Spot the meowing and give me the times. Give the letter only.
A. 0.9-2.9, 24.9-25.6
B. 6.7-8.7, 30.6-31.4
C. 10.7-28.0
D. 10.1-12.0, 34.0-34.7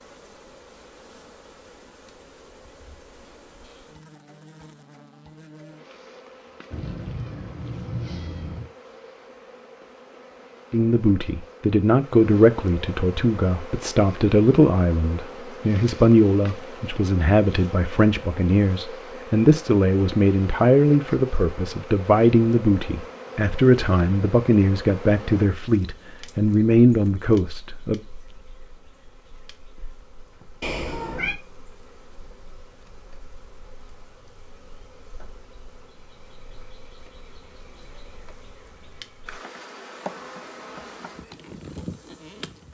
B.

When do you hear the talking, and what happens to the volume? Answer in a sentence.
You can hear the talking from 10.7 to 28.0 s, at a steady volume.